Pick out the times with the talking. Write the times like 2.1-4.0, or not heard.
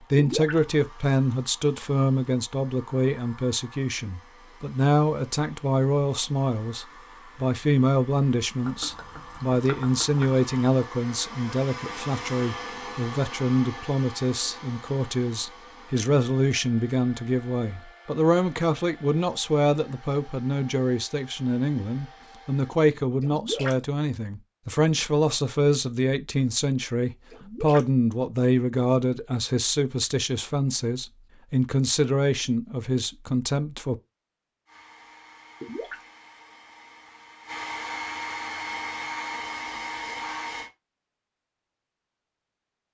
0.0-34.0.